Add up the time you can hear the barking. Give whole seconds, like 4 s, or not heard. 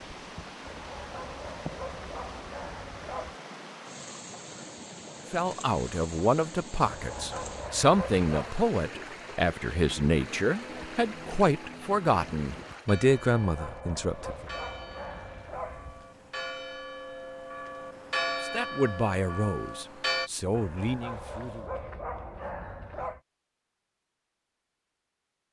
10 s.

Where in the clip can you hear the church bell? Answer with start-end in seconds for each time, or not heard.
9.8-20.3.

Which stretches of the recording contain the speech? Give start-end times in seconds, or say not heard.
5.3-14.3, 18.4-21.8.